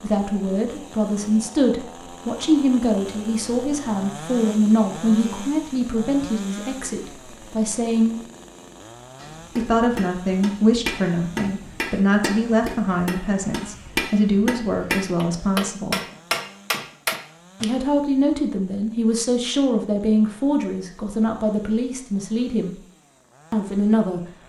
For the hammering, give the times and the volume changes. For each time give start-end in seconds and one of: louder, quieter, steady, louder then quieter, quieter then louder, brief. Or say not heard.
9.2-17.6 louder.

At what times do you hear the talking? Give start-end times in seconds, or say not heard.
0.0-8.2, 9.6-16.0, 17.6-22.8, 23.5-24.2.